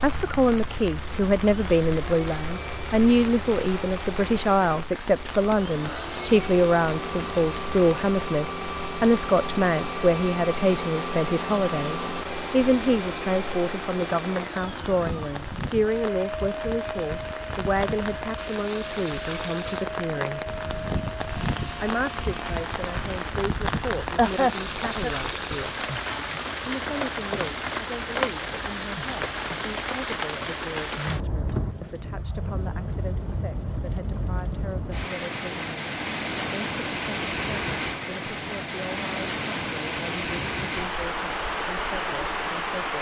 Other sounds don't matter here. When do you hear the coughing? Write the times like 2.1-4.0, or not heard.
24.1-25.1.